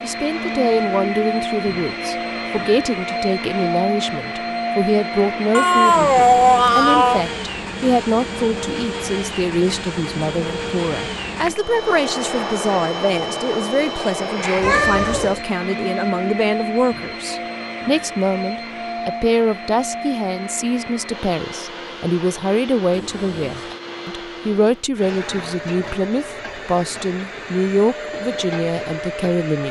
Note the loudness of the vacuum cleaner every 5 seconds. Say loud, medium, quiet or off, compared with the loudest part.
loud, loud, loud, loud, medium, medium.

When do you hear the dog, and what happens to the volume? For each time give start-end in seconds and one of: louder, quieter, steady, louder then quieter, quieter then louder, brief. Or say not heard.
not heard.